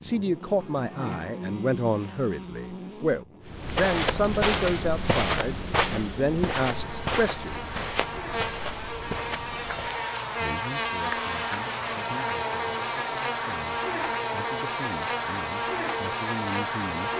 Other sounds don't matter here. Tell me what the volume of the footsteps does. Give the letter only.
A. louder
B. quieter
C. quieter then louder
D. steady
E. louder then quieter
B.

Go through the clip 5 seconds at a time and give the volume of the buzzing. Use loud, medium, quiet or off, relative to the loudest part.
medium, medium, loud, loud.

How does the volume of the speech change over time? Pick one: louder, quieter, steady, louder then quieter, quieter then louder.
quieter then louder.